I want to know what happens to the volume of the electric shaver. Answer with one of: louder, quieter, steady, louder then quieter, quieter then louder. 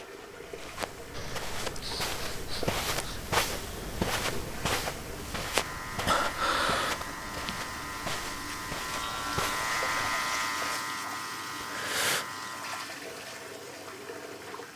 louder then quieter.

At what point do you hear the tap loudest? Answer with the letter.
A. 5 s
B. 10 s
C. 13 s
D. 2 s
B.